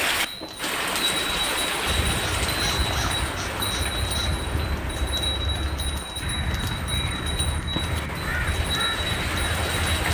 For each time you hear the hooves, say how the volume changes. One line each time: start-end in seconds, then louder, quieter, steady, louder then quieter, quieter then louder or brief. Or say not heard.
0.0-10.1 steady.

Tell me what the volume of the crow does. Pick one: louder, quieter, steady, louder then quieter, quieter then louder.
steady.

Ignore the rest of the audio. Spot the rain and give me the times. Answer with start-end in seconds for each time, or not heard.
0.0-10.1.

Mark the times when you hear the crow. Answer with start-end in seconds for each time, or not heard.
1.9-10.1.